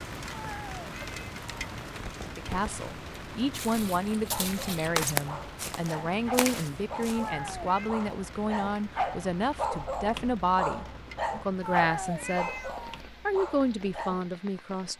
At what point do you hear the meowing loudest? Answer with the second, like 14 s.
12 s.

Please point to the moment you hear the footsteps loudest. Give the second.
5 s.